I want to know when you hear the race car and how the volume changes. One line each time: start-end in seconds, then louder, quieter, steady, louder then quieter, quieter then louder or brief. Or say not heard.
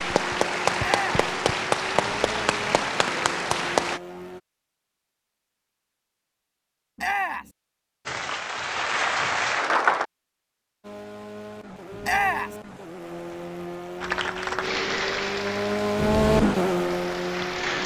0.0-4.4 steady
10.8-17.8 louder.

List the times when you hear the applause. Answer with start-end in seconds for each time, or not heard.
0.0-4.0, 8.1-10.1, 14.0-17.8.